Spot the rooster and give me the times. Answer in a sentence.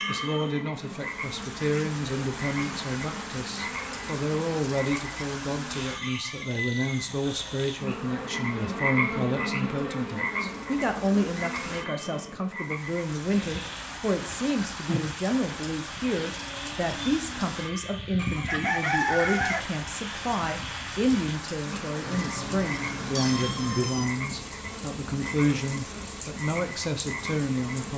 The rooster can be heard from 6.0 to 7.5 s and from 18.1 to 19.6 s.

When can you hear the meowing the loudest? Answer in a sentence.
The loudest moment of the meowing is at 23 seconds.